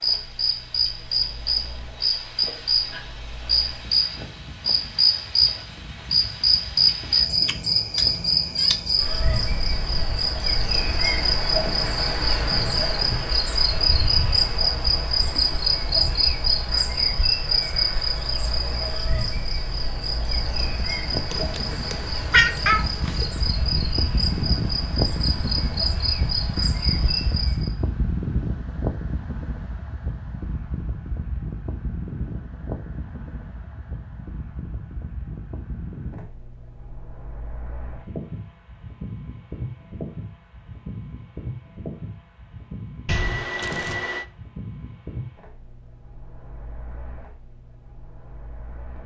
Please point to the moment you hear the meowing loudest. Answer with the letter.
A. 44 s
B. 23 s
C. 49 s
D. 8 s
B.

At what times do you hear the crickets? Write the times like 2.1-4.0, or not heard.
0.0-27.7.